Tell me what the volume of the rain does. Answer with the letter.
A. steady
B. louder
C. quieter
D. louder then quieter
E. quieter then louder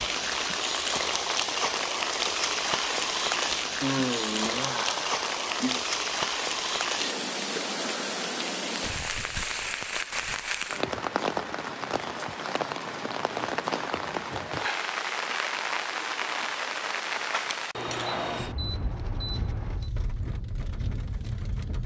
C.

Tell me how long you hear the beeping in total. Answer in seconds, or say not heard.
2 s.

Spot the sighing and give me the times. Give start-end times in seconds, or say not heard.
3.8-5.8.